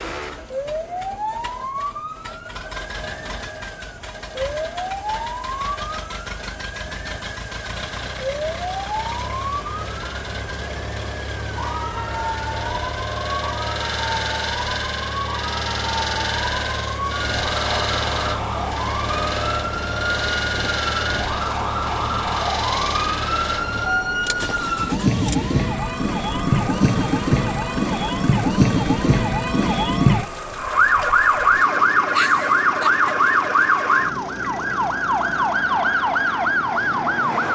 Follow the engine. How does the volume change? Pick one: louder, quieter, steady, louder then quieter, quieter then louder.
louder then quieter.